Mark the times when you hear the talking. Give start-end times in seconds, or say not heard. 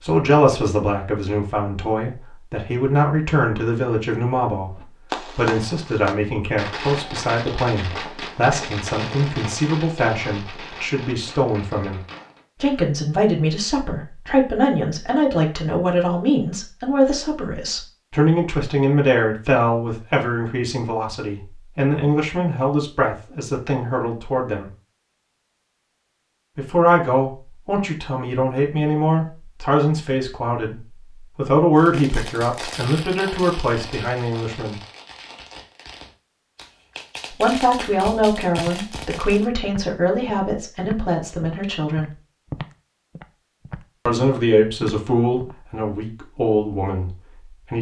0.0-12.0, 12.6-24.7, 26.6-34.8, 37.3-42.1, 44.0-47.7.